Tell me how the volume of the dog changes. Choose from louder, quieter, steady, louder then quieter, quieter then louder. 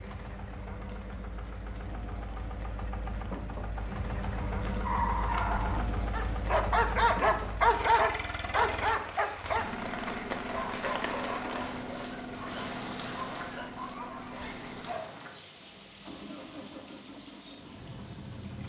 louder then quieter.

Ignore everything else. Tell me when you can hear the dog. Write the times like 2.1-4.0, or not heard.
4.2-15.2.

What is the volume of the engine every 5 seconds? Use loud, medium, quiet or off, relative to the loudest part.
loud, loud, loud, medium.